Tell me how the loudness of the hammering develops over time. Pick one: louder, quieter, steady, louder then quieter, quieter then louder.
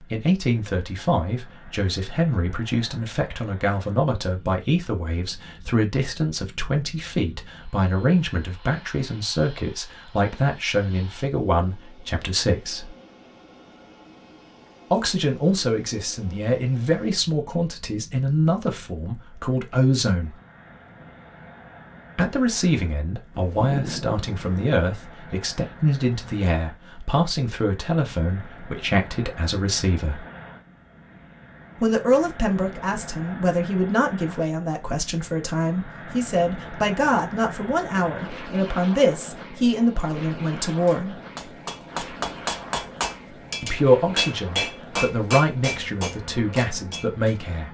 louder then quieter.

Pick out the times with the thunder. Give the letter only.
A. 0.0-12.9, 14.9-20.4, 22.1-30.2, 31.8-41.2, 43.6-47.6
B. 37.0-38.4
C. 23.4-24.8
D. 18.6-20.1
C.